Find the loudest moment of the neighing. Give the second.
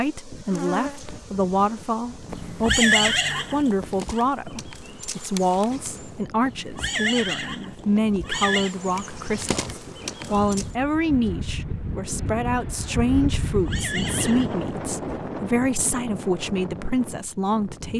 3 s.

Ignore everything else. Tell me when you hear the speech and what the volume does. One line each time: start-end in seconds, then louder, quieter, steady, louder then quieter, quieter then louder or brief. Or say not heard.
0.0-17.9 steady.